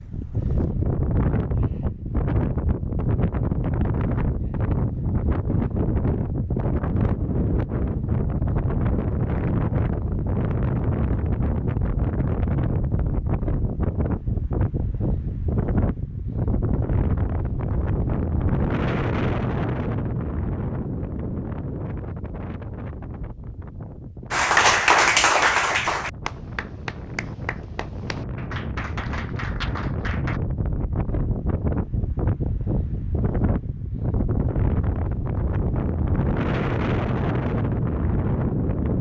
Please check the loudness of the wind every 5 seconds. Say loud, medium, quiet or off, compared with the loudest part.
loud, loud, loud, loud, medium, medium, loud, loud.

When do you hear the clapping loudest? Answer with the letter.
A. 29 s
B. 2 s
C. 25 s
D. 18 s
C.